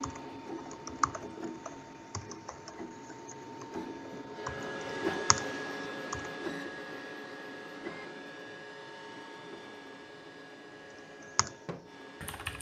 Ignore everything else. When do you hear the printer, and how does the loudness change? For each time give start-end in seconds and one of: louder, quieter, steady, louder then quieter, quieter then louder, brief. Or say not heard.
0.0-12.5 louder then quieter.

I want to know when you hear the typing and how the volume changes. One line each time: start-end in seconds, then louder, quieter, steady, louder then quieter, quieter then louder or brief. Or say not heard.
0.0-6.5 quieter then louder
10.9-12.5 brief.